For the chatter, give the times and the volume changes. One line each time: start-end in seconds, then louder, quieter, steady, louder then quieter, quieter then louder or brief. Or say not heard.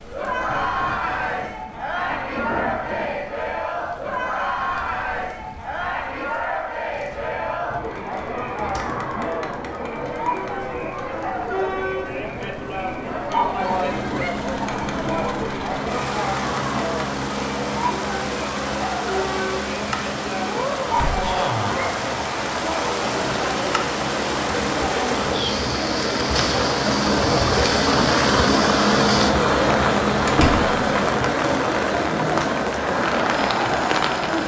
0.1-34.4 steady.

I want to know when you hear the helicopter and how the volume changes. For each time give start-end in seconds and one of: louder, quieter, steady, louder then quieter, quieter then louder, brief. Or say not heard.
13.5-34.4 louder then quieter.